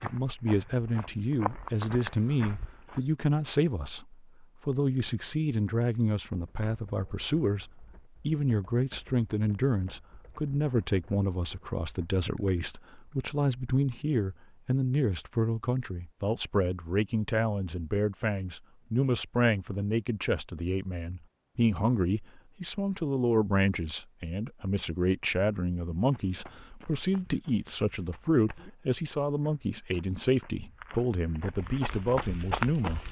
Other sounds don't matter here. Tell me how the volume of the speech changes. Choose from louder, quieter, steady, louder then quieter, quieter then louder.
steady.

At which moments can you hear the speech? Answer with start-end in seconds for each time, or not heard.
0.0-33.0.